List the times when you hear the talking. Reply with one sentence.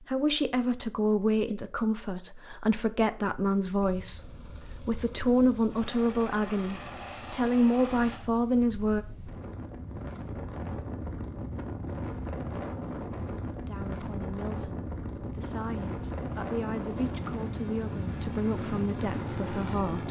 The talking can be heard from 0.0 to 9.1 s and from 13.7 to 20.0 s.